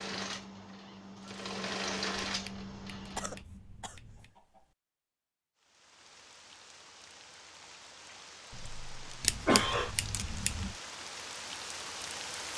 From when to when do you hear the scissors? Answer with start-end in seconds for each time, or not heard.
2.2-4.3, 9.2-10.8.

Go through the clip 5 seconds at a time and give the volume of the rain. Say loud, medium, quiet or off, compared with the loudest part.
off, medium, loud.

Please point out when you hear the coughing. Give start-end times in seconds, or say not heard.
3.1-4.6, 8.5-9.9.